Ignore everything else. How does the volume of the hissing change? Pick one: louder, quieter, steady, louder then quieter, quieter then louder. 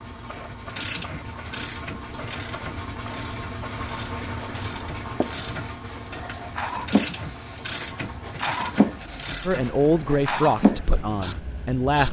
louder.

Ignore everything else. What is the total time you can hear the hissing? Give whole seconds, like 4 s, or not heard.
12 s.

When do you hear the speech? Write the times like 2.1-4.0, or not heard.
9.4-12.0.